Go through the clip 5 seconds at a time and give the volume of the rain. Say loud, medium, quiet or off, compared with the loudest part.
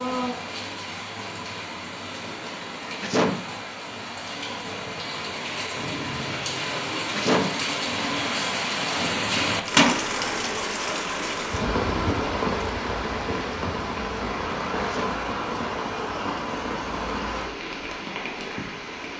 medium, loud, loud, medium.